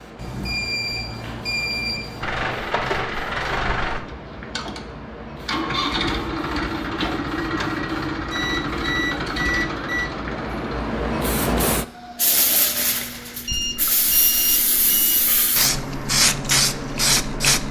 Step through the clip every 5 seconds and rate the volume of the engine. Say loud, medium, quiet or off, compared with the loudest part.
loud, loud, medium, off.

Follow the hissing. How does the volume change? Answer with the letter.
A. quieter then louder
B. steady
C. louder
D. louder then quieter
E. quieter
C.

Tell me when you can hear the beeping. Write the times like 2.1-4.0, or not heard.
0.1-2.5, 8.3-10.1, 13.4-15.6.